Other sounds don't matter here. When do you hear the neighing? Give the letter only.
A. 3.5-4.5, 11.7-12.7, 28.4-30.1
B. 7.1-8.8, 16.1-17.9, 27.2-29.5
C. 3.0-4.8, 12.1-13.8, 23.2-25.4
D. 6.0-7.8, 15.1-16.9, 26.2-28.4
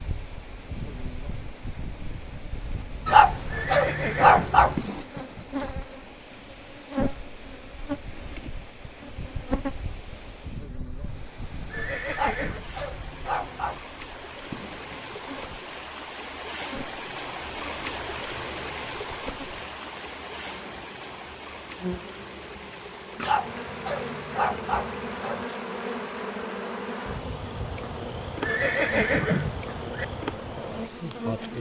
A.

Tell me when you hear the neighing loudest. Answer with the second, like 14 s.
29 s.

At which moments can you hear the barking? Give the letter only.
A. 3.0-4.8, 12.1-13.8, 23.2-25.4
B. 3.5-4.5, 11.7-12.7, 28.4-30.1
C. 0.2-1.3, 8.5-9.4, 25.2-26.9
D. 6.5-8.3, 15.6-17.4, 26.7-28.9
A.